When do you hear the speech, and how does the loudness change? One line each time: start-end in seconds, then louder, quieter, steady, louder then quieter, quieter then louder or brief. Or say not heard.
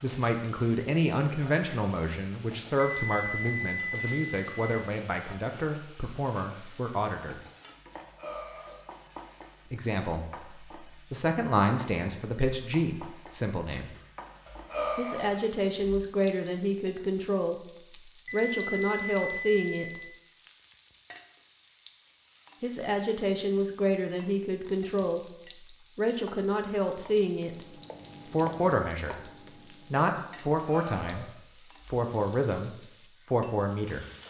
0.0-7.4 quieter
9.7-13.9 louder then quieter
14.9-20.0 steady
22.6-27.6 steady
28.2-29.2 brief
29.9-34.0 quieter then louder.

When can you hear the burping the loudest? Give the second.
15 s.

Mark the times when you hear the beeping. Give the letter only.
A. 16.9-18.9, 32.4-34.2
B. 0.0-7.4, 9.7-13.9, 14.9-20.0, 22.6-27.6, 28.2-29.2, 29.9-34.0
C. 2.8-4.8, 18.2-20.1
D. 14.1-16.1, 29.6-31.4
C.